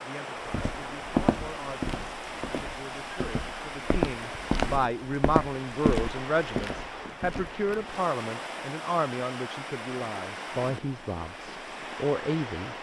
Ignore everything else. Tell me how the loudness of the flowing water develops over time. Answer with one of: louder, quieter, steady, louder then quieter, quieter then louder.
steady.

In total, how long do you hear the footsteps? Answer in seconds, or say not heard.
7 s.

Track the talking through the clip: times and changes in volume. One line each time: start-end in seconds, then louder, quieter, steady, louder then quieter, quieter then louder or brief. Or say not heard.
0.0-12.7 louder.